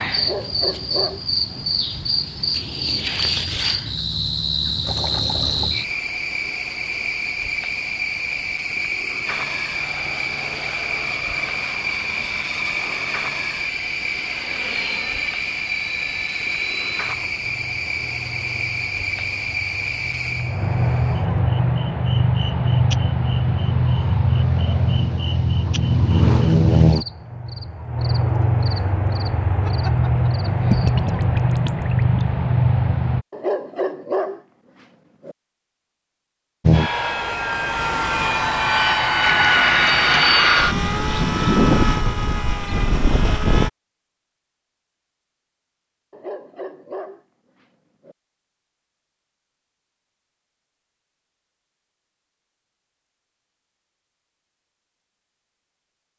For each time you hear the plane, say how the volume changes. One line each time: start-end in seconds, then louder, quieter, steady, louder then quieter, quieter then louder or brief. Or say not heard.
9.2-33.2 louder
36.6-43.7 louder then quieter.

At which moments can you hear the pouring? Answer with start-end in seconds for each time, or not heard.
4.8-5.7, 30.7-32.4, 39.2-40.4.